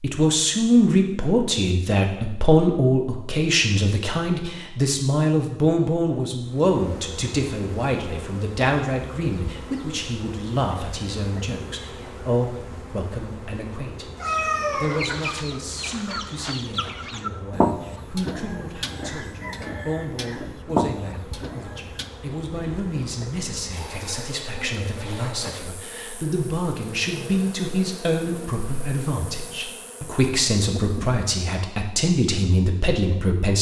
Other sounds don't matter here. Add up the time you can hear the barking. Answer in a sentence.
You can't hear the barking here.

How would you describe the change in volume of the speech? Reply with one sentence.
The volume of the speech goes down, then up.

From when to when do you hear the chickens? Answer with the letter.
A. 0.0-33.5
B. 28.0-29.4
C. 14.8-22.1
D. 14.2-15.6
C.